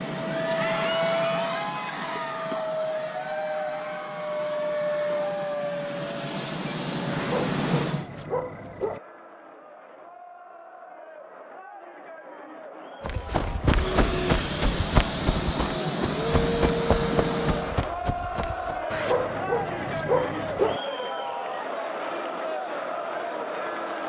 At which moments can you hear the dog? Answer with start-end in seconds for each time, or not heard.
7.1-9.0, 18.9-20.8.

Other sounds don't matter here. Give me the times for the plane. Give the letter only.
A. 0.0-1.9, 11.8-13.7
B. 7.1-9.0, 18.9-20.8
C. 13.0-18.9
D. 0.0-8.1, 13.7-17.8
D.